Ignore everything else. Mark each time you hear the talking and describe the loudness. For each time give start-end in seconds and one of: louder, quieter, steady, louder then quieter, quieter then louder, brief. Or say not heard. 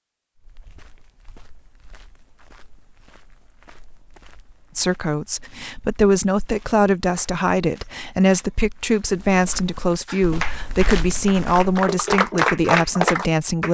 4.8-13.6 steady.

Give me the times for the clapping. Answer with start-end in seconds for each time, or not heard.
10.1-13.6.